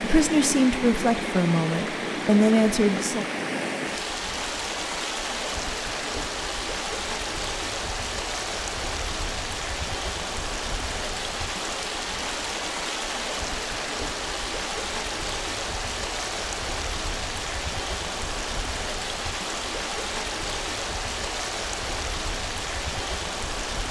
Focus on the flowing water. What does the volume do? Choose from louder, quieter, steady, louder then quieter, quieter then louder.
steady.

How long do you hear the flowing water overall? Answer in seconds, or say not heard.
24 s.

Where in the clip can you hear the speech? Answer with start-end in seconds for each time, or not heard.
0.0-3.2.